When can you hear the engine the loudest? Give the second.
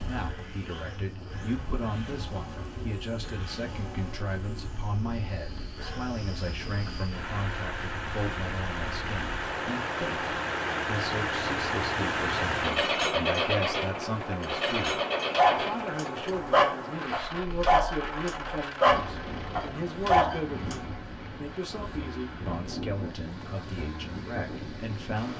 13 s.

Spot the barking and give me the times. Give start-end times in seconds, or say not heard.
15.3-20.8.